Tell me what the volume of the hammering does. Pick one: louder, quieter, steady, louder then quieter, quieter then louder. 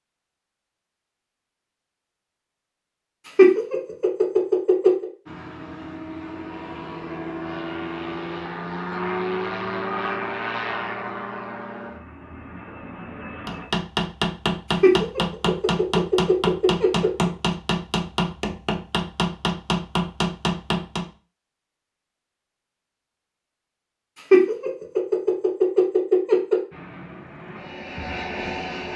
steady.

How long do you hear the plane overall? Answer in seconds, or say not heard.
11 s.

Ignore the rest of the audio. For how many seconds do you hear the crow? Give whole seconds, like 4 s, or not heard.
not heard.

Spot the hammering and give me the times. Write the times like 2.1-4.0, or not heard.
13.4-21.1.